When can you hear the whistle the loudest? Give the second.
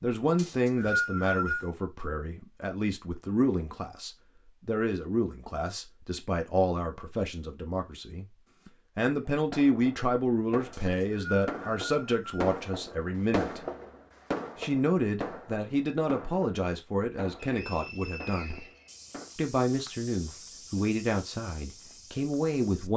1 s.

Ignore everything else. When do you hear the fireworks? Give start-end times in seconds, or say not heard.
9.4-19.3.